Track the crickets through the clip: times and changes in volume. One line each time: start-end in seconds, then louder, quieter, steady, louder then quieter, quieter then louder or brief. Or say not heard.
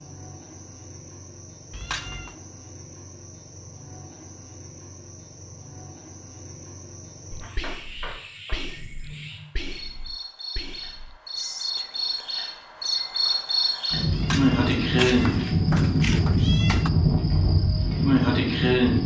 0.0-19.0 louder.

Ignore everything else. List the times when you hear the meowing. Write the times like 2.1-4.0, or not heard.
1.7-2.4, 14.1-16.9.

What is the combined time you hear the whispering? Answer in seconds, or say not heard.
7 s.